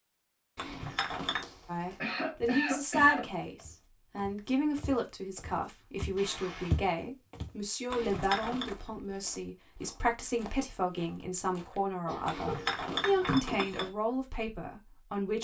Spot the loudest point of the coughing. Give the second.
3 s.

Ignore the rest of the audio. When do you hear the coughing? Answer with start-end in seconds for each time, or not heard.
2.0-3.3, 6.2-6.8, 12.1-13.1.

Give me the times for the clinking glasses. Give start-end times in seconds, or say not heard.
0.6-1.4, 7.9-8.7, 12.2-13.9.